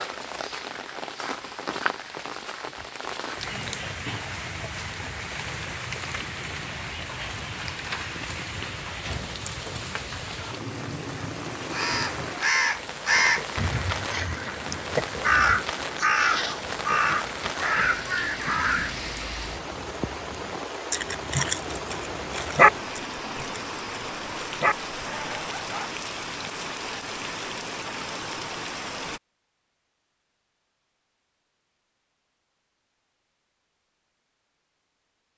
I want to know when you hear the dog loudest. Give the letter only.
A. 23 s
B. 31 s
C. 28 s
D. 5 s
A.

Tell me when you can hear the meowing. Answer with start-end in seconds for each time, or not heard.
not heard.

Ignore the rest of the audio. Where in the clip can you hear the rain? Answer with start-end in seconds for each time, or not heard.
0.0-29.2.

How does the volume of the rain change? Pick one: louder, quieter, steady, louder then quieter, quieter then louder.
steady.